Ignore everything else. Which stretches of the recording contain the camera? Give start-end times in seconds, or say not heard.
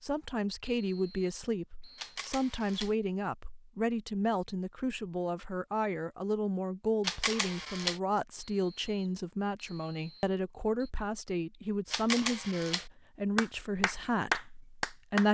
1.9-3.0, 7.0-8.0, 11.9-12.8.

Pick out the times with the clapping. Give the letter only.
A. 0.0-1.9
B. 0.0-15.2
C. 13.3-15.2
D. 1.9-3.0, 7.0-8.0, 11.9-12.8
C.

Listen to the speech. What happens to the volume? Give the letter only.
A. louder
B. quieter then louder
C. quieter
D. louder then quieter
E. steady
E.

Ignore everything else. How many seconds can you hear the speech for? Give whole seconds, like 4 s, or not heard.
15 s.